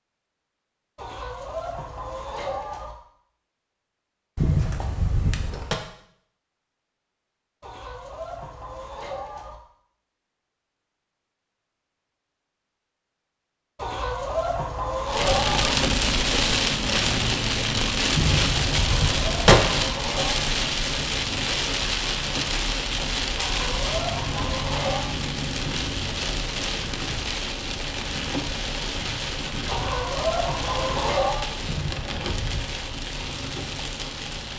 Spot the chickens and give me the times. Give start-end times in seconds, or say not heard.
0.9-3.0, 7.6-9.6, 13.8-15.8, 18.8-20.5, 23.4-25.1, 29.6-31.4.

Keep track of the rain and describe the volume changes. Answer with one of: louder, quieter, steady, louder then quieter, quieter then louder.
quieter.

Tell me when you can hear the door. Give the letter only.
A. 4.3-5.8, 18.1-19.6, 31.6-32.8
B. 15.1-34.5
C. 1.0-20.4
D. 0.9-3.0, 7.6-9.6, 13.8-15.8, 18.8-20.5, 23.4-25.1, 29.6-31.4
A.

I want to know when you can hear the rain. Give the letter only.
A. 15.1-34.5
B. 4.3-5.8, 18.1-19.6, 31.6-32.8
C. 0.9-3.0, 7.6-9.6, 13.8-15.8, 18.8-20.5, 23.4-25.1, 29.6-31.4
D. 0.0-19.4
A.